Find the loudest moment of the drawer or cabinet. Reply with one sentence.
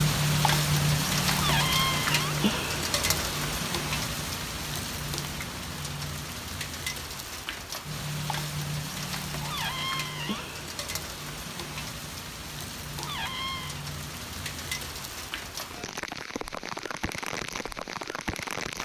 The volume of the drawer or cabinet peaks at 2 seconds.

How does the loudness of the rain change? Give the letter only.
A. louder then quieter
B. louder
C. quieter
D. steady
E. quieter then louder
C.